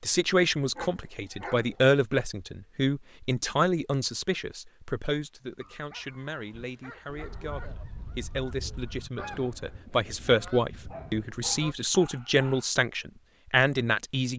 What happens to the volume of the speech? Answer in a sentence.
The volume of the speech goes down, then up.